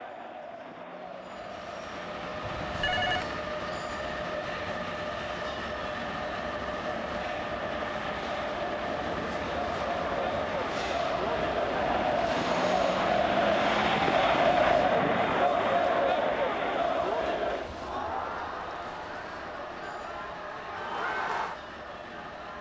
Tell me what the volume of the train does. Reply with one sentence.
The loudness of the train goes down.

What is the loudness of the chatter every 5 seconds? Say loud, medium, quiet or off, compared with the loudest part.
quiet, medium, loud, loud, medium.